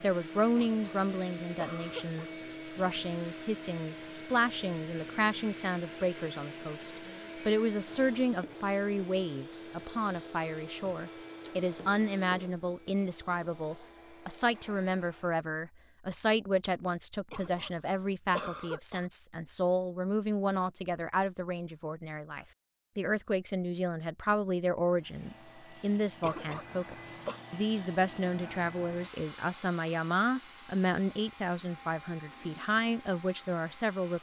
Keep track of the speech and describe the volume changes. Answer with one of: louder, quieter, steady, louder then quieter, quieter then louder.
steady.